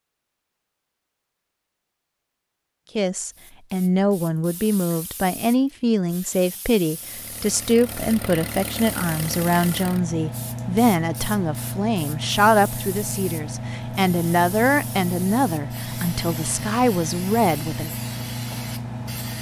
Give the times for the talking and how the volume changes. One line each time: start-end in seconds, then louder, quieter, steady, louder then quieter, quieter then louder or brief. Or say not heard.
3.0-17.9 steady.